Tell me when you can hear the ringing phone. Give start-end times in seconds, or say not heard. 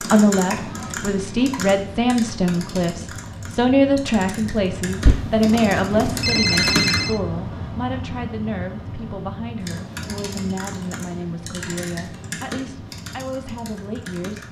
5.0-7.2.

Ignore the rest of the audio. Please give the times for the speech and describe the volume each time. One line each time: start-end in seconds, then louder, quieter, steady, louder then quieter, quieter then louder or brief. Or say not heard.
0.0-14.4 quieter.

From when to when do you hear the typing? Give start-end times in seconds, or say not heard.
0.0-7.1, 9.6-14.4.